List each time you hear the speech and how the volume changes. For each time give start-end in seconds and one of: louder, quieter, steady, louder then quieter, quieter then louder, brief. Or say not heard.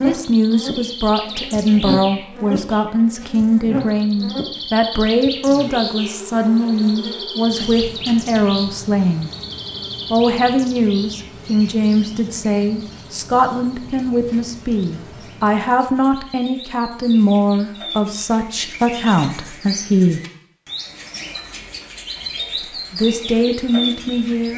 0.0-9.3 steady
10.1-20.2 steady
22.9-24.5 brief.